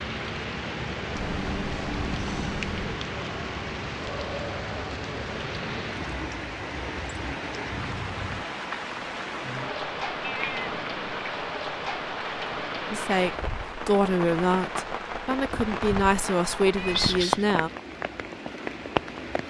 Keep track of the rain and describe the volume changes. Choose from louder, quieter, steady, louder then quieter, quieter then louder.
steady.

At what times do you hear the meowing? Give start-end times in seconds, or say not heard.
1.1-3.0, 10.2-11.2, 16.8-17.4.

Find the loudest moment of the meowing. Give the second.
17 s.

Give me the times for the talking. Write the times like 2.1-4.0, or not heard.
12.9-17.7.